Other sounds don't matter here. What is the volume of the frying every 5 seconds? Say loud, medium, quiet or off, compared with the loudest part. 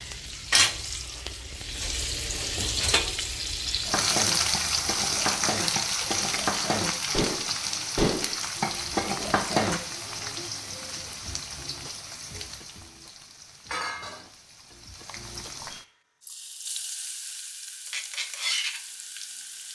loud, loud, medium, medium.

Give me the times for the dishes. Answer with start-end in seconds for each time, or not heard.
3.9-9.8.